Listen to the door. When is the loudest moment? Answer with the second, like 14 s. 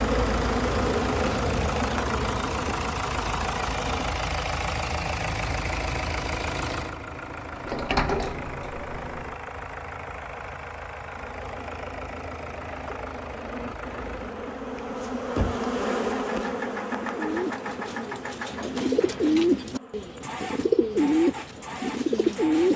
8 s.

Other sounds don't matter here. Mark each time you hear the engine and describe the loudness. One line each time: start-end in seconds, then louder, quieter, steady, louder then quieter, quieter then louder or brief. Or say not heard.
0.0-22.7 quieter.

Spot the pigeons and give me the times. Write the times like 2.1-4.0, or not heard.
17.1-22.7.